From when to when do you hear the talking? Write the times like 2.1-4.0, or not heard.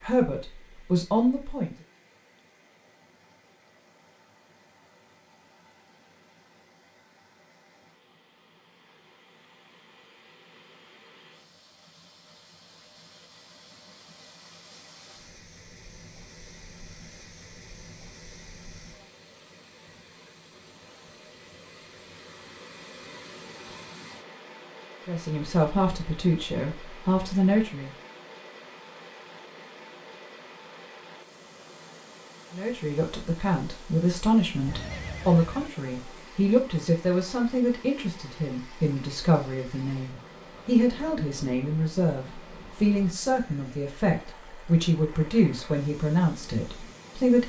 0.0-1.7, 25.1-27.9, 32.5-47.4.